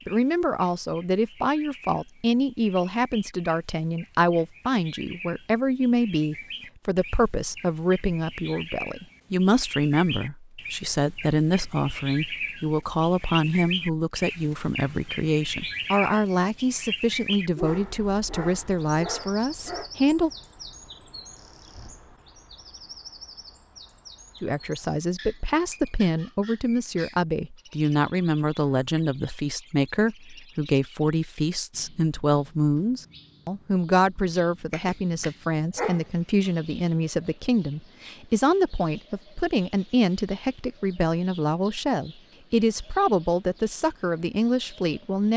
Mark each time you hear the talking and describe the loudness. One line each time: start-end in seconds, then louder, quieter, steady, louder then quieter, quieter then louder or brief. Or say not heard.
0.1-20.3 steady
24.4-45.3 steady.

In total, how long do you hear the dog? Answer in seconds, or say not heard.
4 s.